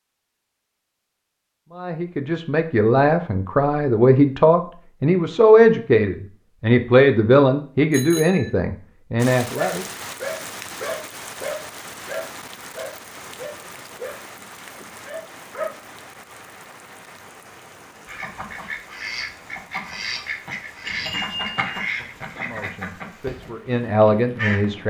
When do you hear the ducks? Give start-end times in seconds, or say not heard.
18.1-24.8.